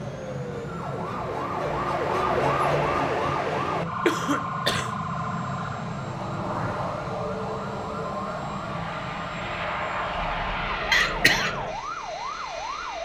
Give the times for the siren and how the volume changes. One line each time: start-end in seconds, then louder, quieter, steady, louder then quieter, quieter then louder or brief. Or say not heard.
0.0-13.0 quieter.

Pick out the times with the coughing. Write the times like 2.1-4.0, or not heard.
4.0-5.0, 10.9-11.5.